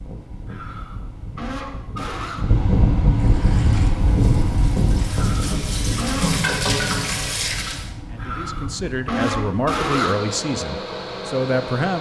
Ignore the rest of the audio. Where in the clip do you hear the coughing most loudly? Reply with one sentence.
The volume of the coughing peaks at 10 seconds.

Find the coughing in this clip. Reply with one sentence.
You can hear the coughing from 0.5 to 2.5 s, from 5.0 to 6.3 s and from 8.2 to 10.2 s.